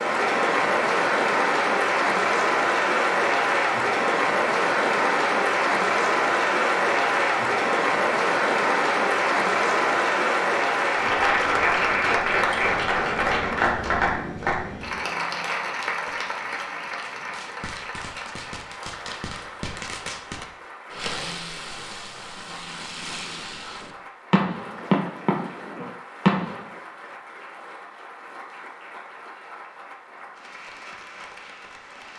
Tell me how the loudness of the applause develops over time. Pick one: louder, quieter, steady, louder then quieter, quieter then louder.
quieter.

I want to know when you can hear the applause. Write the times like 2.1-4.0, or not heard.
0.0-32.1.